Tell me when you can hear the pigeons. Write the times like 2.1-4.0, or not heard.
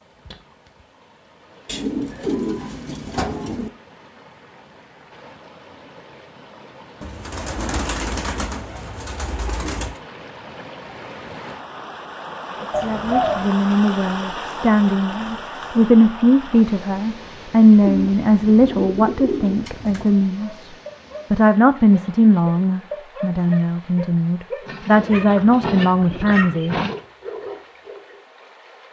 1.6-3.7, 7.0-10.0, 12.7-13.5, 17.8-20.1, 24.6-27.0.